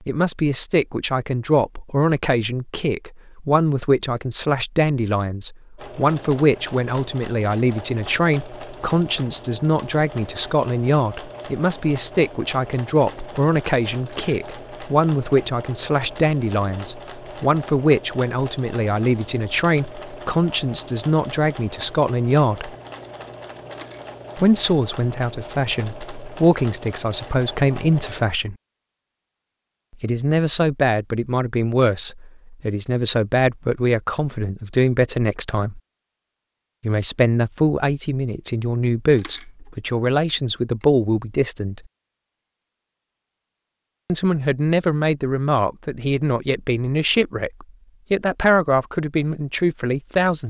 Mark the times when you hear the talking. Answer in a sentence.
You can hear the talking from 0.1 to 22.8 s, from 24.4 to 28.6 s, from 30.0 to 35.8 s, from 36.8 to 41.8 s and from 44.0 to 50.4 s.